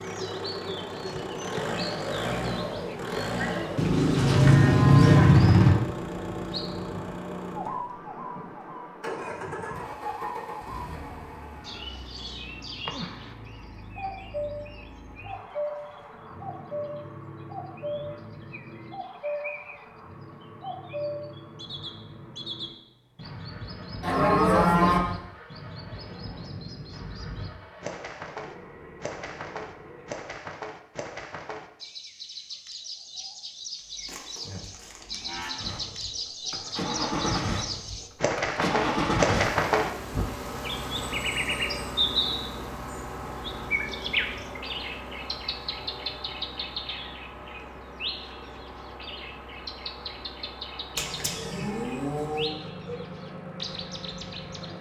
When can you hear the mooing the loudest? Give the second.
5 s.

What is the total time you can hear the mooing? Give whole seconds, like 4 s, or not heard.
6 s.